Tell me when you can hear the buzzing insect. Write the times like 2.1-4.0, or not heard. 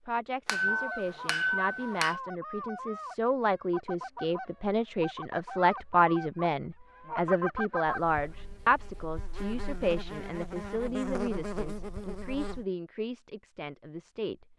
7.8-12.7.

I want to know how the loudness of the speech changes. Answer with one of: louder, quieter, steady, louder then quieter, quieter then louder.
louder then quieter.